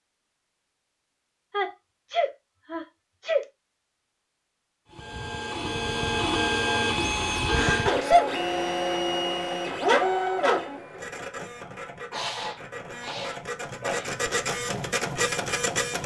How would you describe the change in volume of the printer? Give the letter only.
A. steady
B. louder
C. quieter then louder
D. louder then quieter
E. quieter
C.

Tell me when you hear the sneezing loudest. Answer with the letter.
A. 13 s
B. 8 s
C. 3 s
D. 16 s
B.